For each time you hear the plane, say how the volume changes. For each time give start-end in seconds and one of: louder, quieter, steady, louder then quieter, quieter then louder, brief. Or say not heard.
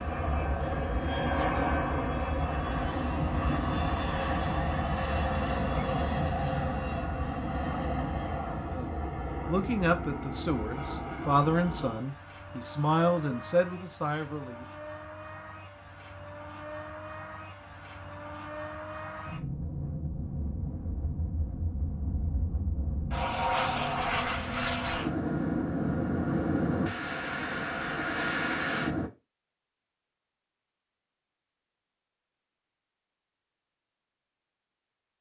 0.0-29.1 quieter then louder.